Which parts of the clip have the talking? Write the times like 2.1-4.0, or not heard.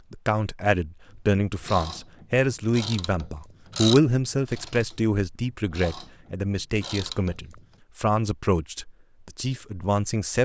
0.1-10.3.